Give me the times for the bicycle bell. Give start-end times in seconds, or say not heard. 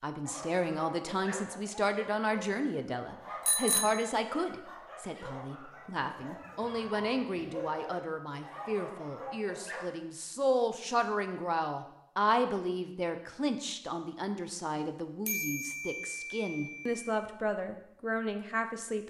3.5-4.1, 15.2-17.1.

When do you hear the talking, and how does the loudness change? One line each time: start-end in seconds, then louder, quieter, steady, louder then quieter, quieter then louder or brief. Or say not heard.
0.0-19.0 steady.